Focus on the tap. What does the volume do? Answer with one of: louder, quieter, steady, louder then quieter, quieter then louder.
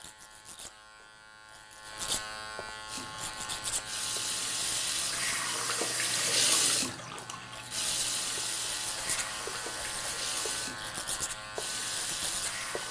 louder then quieter.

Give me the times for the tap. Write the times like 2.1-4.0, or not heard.
2.9-12.8.